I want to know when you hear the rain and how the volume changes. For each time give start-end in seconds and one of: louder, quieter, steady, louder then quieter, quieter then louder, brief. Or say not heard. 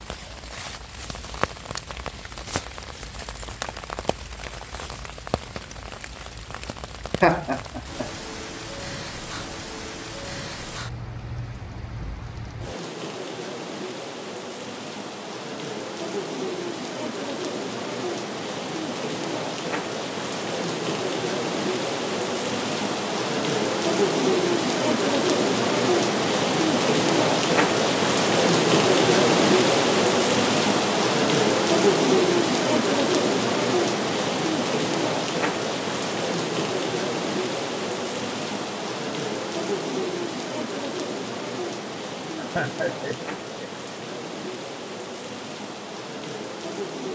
0.0-47.0 louder then quieter.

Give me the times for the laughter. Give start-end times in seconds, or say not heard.
7.2-8.1, 42.4-43.9.